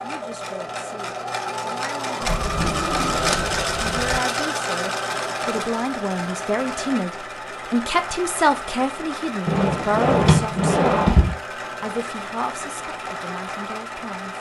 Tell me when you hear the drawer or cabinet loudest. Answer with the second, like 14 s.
10 s.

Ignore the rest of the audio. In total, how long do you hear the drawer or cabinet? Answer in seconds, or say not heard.
4 s.